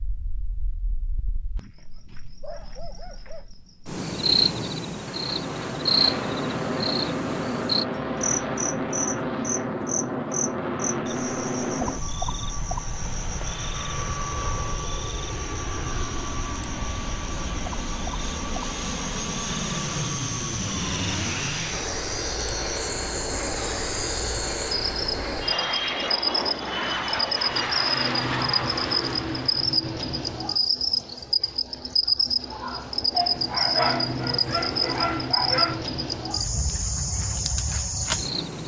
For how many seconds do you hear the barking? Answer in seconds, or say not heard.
5 s.